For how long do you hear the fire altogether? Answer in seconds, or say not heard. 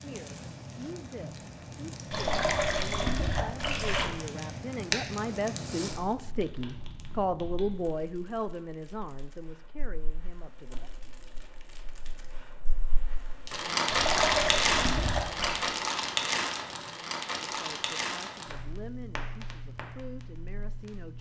21 s.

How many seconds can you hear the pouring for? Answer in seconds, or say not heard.
4 s.